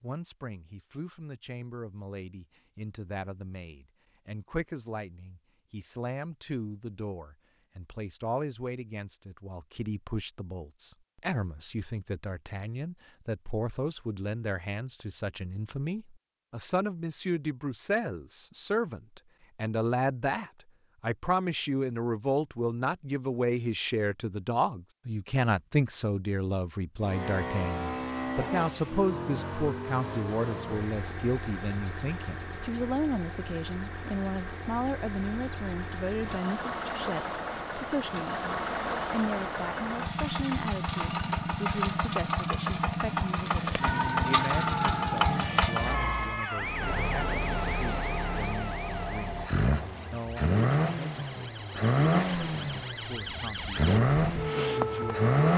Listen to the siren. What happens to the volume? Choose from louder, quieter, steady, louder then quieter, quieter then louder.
quieter then louder.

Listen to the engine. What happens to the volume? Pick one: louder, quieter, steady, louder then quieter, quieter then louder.
louder.